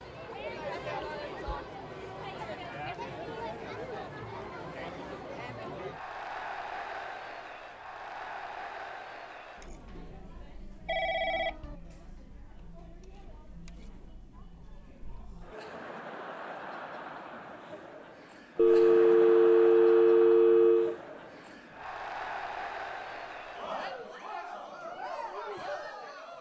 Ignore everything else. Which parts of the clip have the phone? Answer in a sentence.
You can hear the phone from 0.7 to 1.7 s, from 10.8 to 11.8 s and from 18.6 to 20.9 s.